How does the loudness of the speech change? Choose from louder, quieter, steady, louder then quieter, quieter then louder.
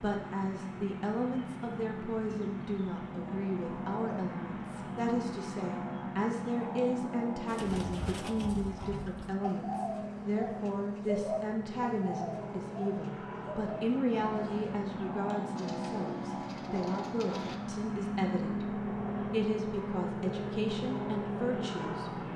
steady.